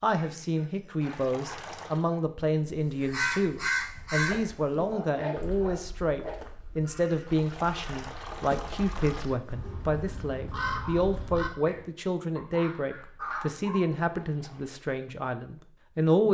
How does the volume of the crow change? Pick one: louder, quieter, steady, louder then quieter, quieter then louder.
quieter then louder.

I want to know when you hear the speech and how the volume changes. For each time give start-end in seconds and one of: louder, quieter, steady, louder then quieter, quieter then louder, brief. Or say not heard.
0.0-16.2 steady.